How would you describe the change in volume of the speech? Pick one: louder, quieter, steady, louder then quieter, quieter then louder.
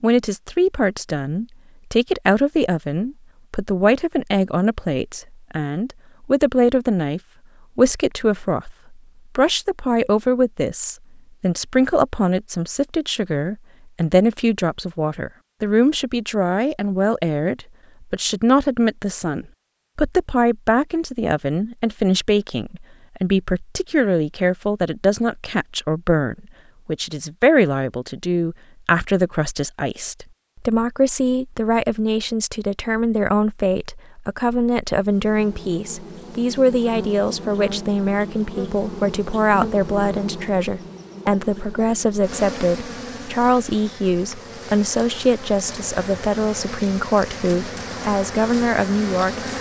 steady.